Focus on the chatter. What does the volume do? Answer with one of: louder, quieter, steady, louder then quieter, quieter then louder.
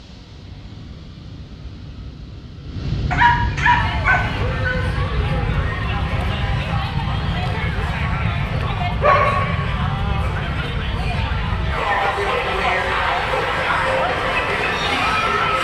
louder.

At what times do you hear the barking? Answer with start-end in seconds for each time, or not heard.
3.1-4.8, 9.0-10.4.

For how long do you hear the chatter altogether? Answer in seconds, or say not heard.
12 s.